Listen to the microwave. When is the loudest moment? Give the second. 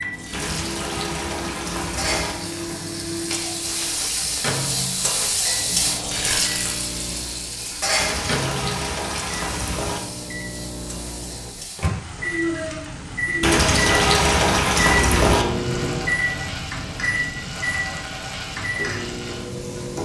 15 s.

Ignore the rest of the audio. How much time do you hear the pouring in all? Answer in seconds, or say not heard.
6 s.